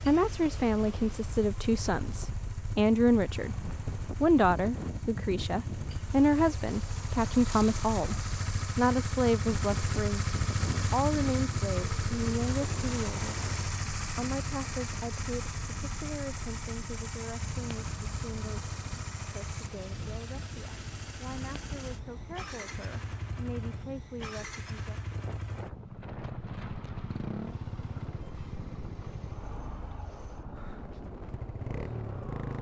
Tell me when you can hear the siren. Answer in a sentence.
You can't hear the siren here.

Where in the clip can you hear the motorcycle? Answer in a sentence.
The motorcycle can be heard from 0.0 to 32.5 s.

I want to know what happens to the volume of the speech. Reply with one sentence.
The volume of the speech goes down.